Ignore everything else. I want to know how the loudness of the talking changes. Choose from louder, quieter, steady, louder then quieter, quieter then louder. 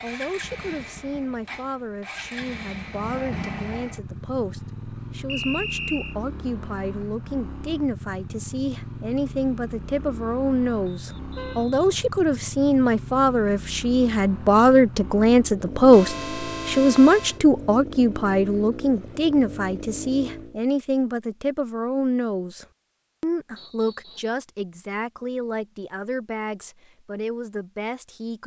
louder then quieter.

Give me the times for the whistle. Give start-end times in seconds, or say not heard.
5.2-6.2, 10.9-12.0, 23.6-24.4.